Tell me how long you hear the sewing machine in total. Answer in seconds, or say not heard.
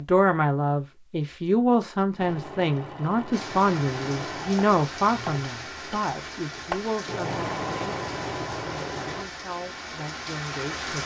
7 s.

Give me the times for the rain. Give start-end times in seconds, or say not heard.
3.3-11.0.